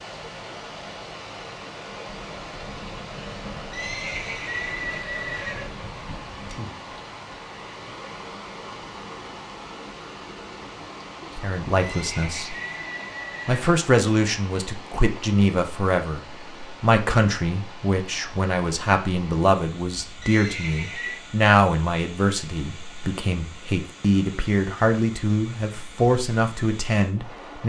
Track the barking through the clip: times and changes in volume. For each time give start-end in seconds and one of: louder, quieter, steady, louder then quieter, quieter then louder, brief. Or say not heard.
not heard.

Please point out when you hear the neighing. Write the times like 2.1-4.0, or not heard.
3.7-5.8, 11.8-13.7, 20.2-21.2.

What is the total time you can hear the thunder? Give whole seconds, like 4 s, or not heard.
5 s.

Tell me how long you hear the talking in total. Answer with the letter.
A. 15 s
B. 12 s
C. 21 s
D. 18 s
A.